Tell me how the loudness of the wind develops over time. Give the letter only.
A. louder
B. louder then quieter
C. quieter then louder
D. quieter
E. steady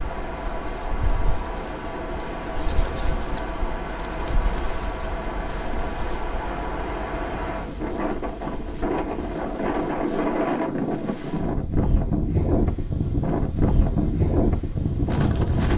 A.